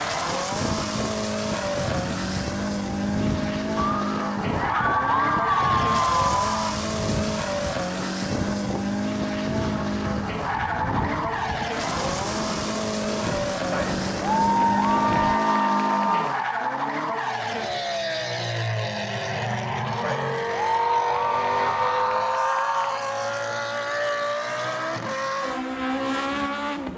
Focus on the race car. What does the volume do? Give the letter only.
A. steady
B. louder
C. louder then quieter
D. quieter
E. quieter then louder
A.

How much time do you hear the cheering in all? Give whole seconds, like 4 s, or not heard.
9 s.